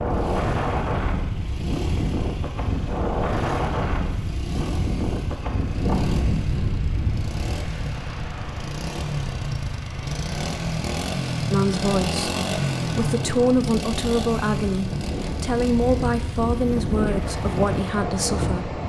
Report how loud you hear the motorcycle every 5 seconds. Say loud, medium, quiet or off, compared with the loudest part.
medium, medium, loud, medium.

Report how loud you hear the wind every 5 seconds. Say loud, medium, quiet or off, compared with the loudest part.
loud, loud, medium, loud.